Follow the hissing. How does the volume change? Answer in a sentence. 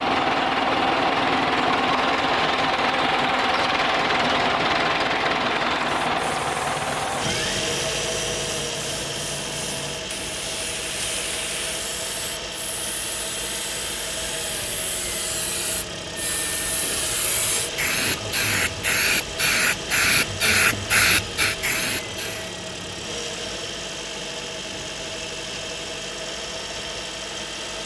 The loudness of the hissing goes up.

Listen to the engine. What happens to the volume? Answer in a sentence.
The loudness of the engine goes down.